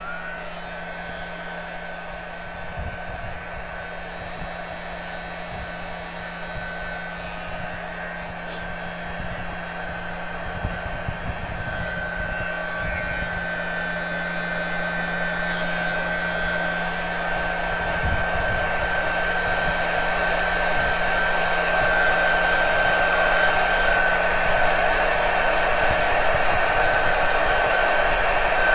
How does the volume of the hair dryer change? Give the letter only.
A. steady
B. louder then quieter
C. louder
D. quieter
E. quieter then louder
C.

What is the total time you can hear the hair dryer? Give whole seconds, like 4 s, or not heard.
29 s.